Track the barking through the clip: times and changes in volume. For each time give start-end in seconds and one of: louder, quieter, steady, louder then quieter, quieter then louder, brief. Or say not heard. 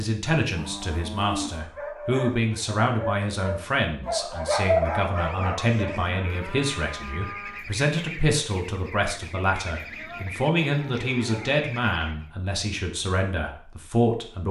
1.6-6.0 louder then quieter.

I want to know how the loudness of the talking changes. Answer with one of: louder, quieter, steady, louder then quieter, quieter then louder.
steady.